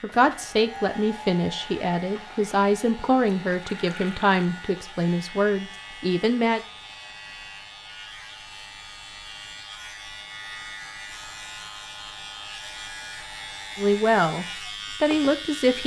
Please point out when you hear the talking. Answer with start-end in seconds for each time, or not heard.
0.0-6.6, 13.8-15.8.